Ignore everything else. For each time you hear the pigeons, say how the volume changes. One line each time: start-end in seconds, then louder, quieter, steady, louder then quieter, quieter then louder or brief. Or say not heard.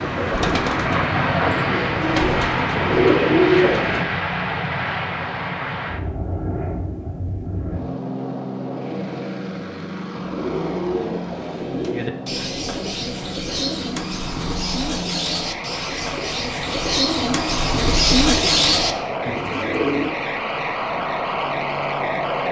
0.0-4.0 quieter then louder
10.1-20.1 louder.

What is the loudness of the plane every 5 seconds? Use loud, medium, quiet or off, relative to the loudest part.
loud, medium, medium, medium, loud.